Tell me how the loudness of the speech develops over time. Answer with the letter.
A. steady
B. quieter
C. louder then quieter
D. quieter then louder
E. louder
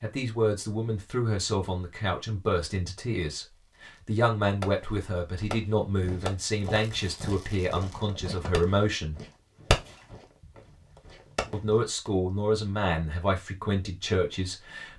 A.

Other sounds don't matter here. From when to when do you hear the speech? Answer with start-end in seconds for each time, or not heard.
0.0-9.2, 11.5-14.9.